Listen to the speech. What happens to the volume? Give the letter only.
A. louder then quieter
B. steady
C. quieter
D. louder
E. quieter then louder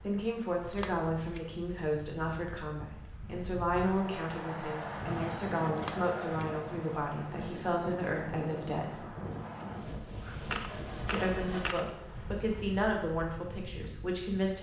B.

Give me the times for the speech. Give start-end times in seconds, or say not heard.
0.0-9.1, 11.1-14.5.